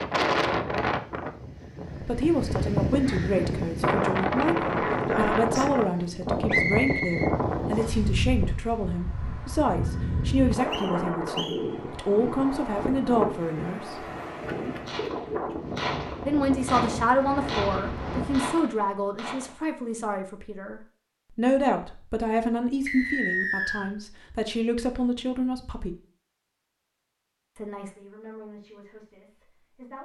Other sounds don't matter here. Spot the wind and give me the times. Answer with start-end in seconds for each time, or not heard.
0.0-18.4.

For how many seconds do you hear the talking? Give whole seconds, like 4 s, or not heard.
24 s.